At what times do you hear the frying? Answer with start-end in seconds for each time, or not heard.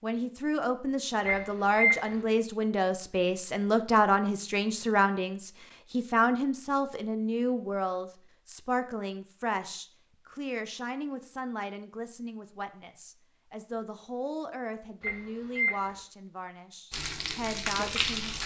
16.9-18.4.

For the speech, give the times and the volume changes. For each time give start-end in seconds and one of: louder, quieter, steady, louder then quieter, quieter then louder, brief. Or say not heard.
0.0-18.4 quieter.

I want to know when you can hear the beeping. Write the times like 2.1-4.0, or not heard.
1.2-2.1, 15.0-16.0.